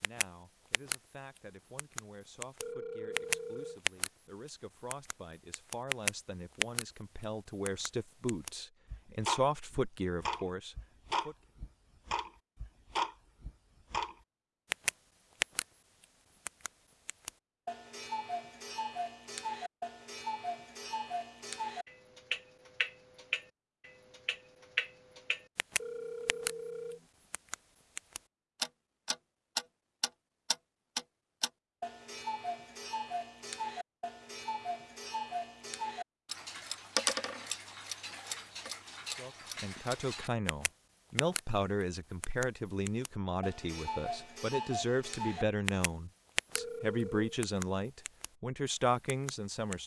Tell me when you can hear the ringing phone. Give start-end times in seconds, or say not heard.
2.6-3.8, 25.8-27.1, 46.5-47.4.